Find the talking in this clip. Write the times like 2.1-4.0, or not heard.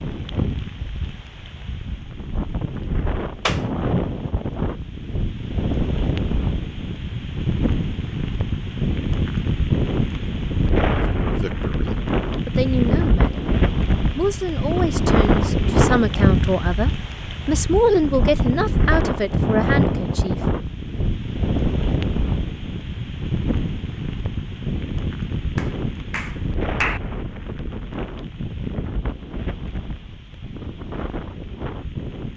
11.2-13.4, 14.2-20.4.